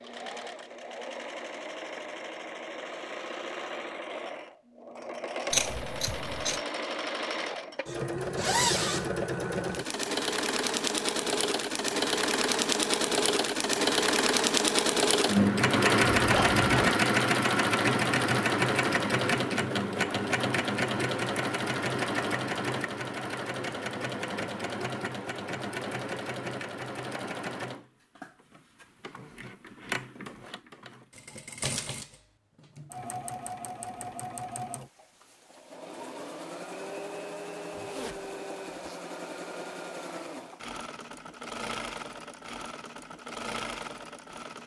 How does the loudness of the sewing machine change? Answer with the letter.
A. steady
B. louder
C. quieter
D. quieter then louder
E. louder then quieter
E.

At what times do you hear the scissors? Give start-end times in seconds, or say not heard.
5.5-6.6.